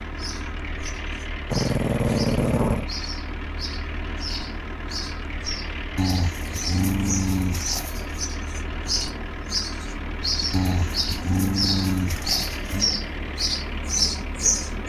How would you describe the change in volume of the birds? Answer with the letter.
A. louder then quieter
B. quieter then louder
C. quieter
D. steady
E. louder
E.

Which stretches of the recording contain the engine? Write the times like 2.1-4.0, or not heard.
0.0-14.8.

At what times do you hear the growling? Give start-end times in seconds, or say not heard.
1.5-2.9, 6.0-8.2, 10.5-12.9.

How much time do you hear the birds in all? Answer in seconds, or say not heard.
15 s.